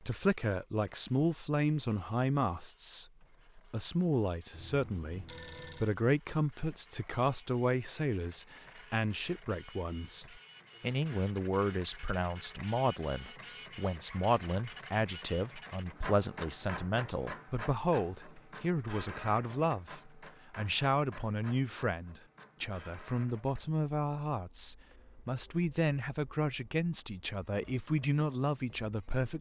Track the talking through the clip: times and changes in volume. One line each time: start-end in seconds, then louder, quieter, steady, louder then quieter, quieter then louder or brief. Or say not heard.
0.0-29.3 steady.